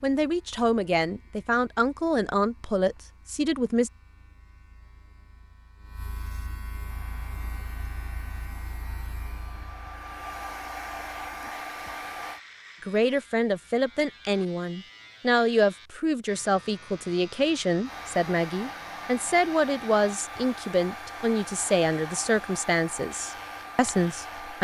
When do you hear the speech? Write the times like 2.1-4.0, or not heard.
0.0-3.9, 12.8-24.5.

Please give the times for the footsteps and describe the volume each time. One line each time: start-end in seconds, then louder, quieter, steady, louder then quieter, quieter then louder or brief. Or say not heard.
not heard.